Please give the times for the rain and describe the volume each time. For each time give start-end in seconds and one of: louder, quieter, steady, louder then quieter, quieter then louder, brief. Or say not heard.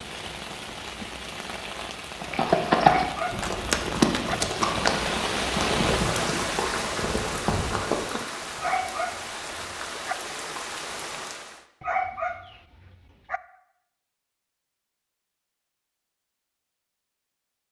0.0-11.7 louder then quieter.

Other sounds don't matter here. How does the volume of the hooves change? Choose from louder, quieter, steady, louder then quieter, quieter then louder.
quieter.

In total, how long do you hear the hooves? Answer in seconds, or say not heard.
6 s.